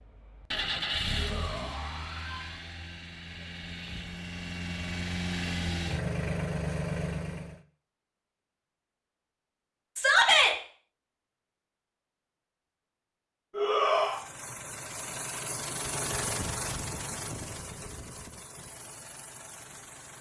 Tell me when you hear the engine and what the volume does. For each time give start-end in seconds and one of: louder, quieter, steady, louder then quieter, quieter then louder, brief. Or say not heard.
0.0-7.6 quieter then louder
13.8-20.1 louder then quieter.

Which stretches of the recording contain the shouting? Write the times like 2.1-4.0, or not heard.
1.1-2.6, 9.9-10.6, 13.6-14.2.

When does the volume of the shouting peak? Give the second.
10 s.